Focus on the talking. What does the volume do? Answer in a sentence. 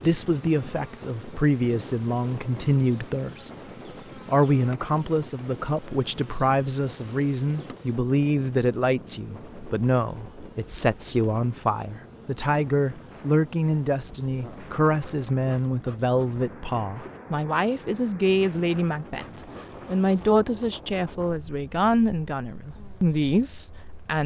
The volume of the talking stays about the same.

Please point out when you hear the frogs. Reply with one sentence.
The frogs can't be heard in this clip.